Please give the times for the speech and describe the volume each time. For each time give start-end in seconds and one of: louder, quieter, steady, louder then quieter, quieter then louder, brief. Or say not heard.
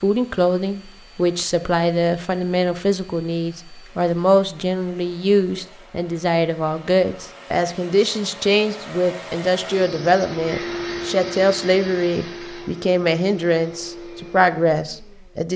0.0-15.5 steady.